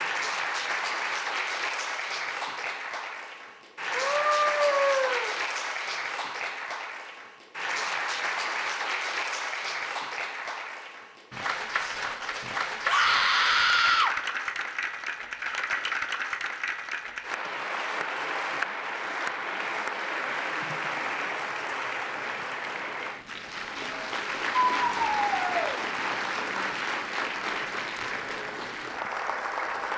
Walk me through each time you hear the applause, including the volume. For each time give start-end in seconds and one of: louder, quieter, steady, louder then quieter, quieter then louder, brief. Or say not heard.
0.0-29.9 steady.